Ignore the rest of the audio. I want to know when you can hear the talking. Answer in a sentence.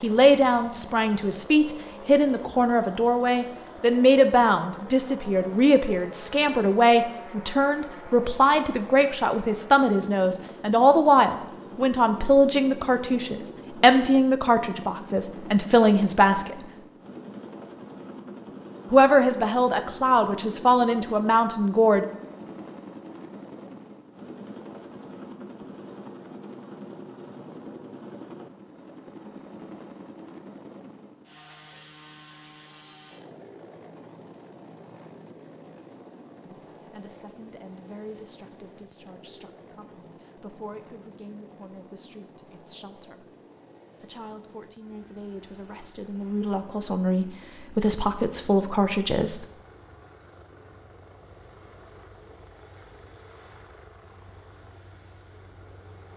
The talking can be heard from 0.0 to 16.6 s, from 18.9 to 22.1 s, from 36.5 to 43.3 s and from 44.0 to 49.5 s.